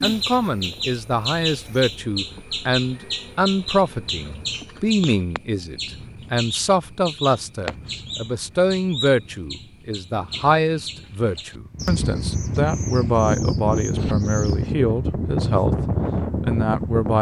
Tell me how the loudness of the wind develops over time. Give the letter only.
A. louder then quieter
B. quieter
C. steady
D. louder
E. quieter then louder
D.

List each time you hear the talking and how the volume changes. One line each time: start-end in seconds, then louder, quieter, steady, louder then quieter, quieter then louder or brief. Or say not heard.
0.0-17.1 steady.